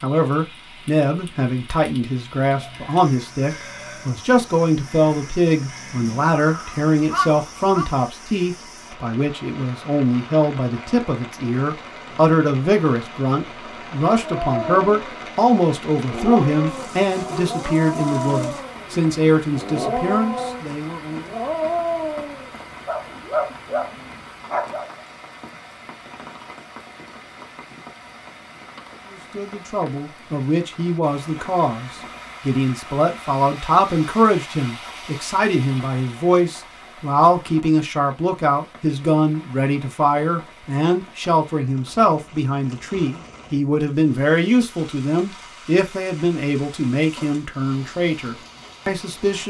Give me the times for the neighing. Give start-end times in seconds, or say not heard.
3.5-4.2.